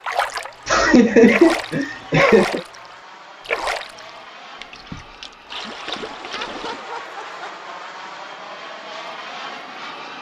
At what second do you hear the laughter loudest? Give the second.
1 s.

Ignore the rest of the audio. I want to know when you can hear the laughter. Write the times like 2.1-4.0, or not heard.
0.7-2.6, 6.2-7.8.